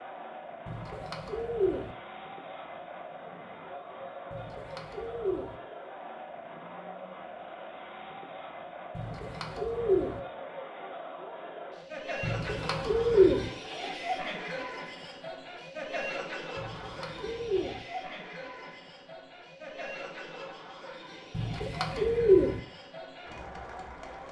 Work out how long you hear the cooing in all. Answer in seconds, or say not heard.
8 s.